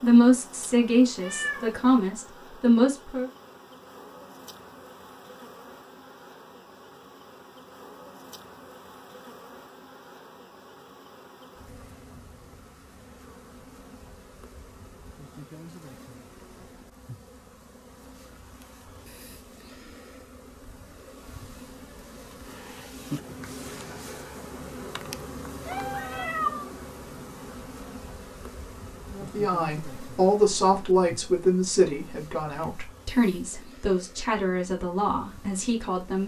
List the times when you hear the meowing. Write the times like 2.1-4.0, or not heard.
1.2-2.1, 25.6-26.6.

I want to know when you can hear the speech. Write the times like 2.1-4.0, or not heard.
0.0-3.3, 29.1-36.2.